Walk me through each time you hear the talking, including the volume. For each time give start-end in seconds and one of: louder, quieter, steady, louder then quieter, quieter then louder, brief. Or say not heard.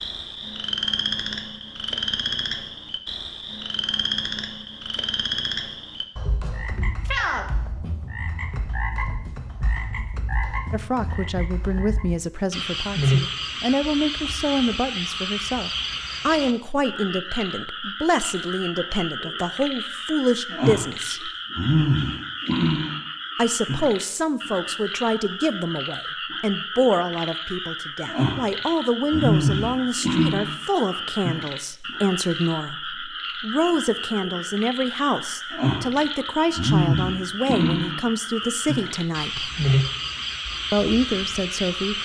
10.7-21.3 steady
23.4-39.5 steady
40.7-42.0 brief.